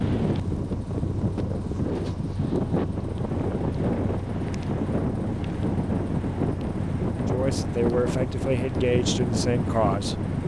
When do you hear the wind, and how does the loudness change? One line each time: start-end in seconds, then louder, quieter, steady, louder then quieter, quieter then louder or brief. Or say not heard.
0.0-10.4 steady.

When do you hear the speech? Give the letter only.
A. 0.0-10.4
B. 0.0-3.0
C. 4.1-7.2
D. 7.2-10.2
D.